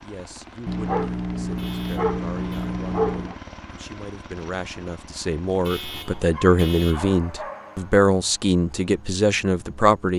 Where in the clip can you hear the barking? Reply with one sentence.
The barking can be heard from 0.7 to 3.4 s and from 6.3 to 8.1 s.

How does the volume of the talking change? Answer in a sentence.
The volume of the talking goes up.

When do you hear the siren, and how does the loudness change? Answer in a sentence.
The siren can't be heard in this clip.